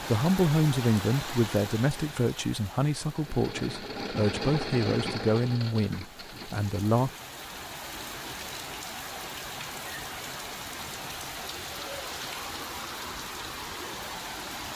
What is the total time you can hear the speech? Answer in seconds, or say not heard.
7 s.